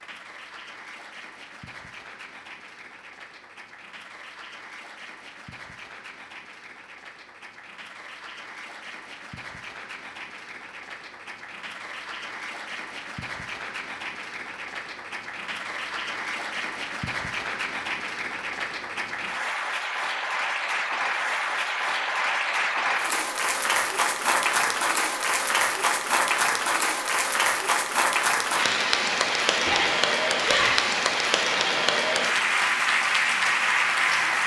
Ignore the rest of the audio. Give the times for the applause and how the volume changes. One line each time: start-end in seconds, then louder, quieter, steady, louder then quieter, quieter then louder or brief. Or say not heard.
0.0-34.4 louder.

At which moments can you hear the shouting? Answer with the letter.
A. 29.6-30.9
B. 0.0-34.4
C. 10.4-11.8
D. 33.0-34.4
A.